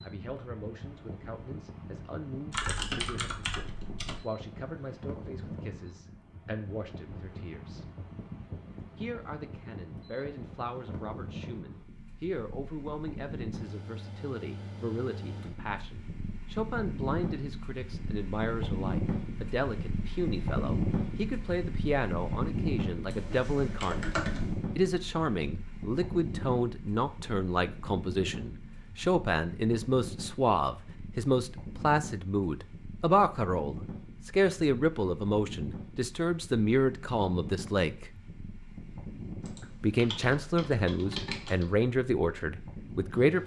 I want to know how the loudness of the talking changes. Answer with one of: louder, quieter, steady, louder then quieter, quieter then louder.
louder.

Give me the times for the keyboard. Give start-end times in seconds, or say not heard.
2.5-4.2, 23.1-24.6, 39.5-41.6.